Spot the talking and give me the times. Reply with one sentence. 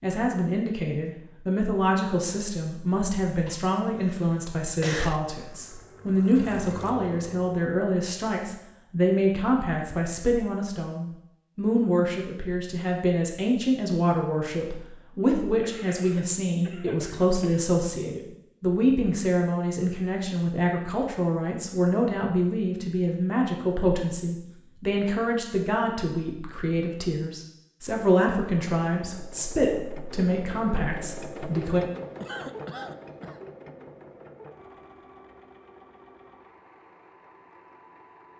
The talking can be heard from 0.0 to 31.9 s.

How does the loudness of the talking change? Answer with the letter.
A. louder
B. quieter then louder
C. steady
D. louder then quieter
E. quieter
C.